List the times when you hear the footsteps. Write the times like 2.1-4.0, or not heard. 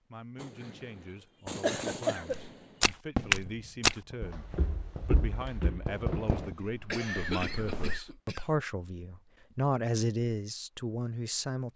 2.3-8.0.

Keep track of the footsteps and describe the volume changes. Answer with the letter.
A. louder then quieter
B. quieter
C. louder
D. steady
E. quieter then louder
B.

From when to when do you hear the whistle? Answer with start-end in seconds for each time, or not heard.
not heard.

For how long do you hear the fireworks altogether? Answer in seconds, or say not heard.
6 s.